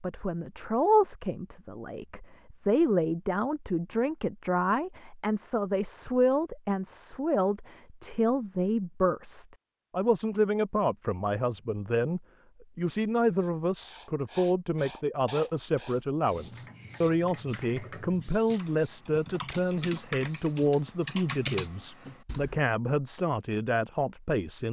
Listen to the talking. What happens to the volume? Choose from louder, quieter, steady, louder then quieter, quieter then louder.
steady.